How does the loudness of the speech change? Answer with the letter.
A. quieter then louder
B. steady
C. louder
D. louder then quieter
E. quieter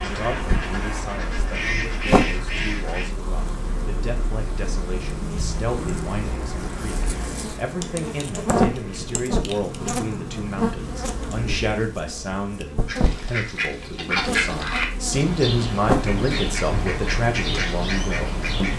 C.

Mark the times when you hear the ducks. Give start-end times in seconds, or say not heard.
0.0-3.1, 12.8-18.7.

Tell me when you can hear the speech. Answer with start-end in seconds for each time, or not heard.
0.0-18.7.